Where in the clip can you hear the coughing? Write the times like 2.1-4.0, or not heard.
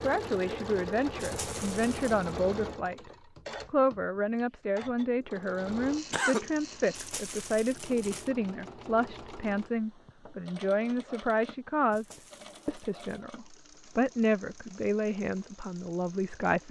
6.1-6.5.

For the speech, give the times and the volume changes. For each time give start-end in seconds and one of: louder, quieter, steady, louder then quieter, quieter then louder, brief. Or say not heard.
0.0-16.6 steady.